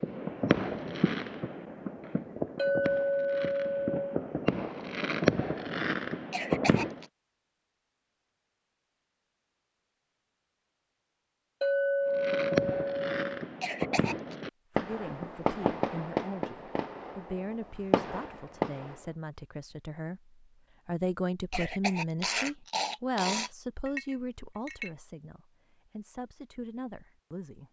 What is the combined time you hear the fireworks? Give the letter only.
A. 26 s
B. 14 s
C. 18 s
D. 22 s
B.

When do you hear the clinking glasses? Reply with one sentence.
The clinking glasses can be heard from 2.5 to 4.2 s, from 11.6 to 13.4 s and from 23.9 to 24.9 s.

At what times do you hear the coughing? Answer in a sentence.
The coughing can be heard from 6.3 to 7.0 s, from 13.6 to 14.3 s and from 21.5 to 23.5 s.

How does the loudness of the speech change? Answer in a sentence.
The volume of the speech goes up, then down.